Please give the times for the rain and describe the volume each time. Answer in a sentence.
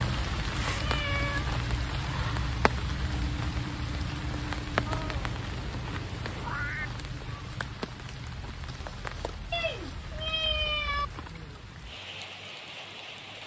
The rain can be heard from 0.0 to 13.4 s, getting quieter.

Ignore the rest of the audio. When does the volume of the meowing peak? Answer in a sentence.
The volume of the meowing peaks at 11 seconds.